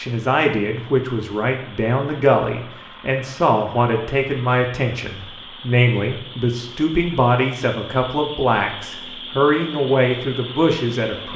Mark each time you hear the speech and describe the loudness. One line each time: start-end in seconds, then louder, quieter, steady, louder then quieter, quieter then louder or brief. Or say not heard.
0.0-11.3 steady.